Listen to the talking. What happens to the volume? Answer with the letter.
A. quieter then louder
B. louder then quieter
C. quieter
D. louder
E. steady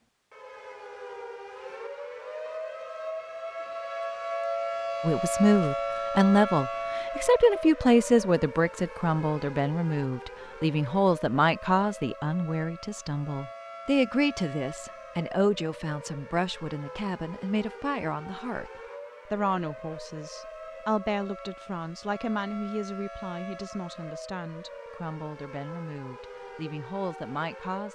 C.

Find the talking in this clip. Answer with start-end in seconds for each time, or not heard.
5.0-18.7, 19.3-27.8.